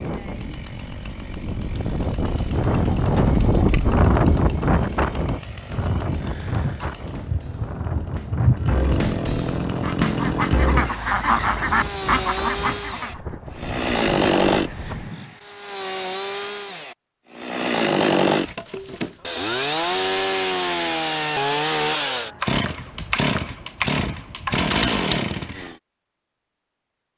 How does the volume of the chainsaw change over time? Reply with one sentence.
The volume of the chainsaw goes up.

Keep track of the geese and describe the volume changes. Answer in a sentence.
The volume of the geese goes up.